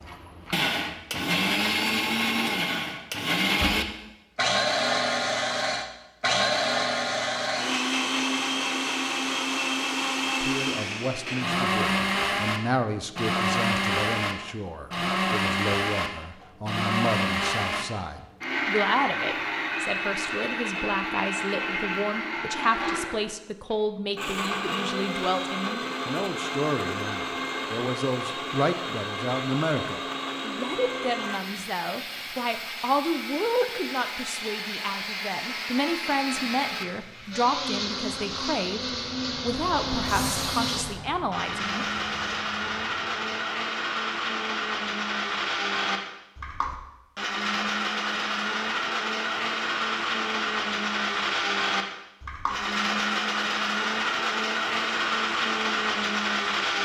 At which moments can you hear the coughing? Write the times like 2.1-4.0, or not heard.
not heard.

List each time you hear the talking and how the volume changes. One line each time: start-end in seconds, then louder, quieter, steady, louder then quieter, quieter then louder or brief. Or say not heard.
10.4-42.4 steady.